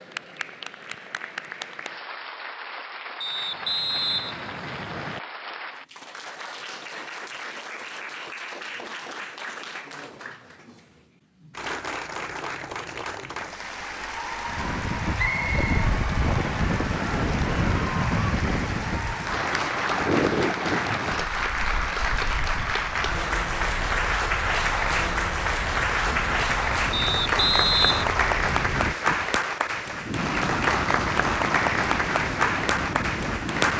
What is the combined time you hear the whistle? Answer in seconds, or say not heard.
4 s.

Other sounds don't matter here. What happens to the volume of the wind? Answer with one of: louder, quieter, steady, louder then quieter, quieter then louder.
quieter then louder.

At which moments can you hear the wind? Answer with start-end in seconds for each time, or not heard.
14.4-33.7.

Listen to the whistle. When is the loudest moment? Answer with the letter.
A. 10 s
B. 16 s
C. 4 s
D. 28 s
D.